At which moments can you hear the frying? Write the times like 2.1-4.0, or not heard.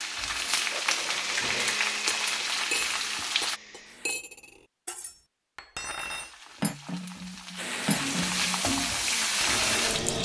0.0-3.6, 6.0-10.1.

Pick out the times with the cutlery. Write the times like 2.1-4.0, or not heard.
1.2-9.8.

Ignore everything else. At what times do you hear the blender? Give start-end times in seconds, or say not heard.
0.0-4.2, 7.5-10.1.